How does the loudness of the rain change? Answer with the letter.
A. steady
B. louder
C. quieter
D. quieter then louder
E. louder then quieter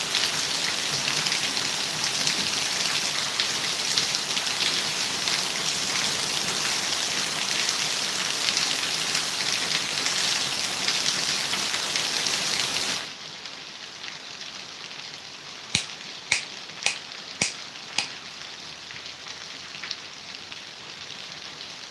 C.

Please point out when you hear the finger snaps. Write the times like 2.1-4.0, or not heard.
15.7-18.1.